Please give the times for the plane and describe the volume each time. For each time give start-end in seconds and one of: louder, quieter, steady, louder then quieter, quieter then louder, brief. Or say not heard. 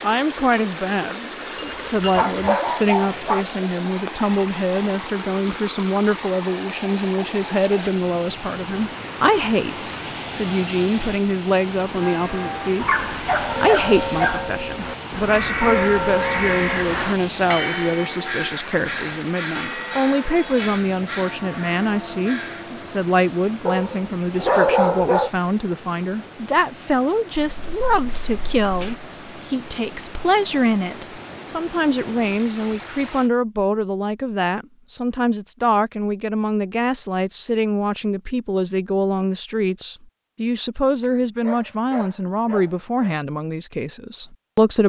not heard.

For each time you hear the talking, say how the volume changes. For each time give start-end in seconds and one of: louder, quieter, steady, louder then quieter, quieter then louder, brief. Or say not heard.
0.0-12.8 steady
13.6-44.8 steady.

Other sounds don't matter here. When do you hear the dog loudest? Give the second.
25 s.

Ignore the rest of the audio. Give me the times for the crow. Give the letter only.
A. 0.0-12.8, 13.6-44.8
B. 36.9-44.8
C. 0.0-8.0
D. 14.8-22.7
D.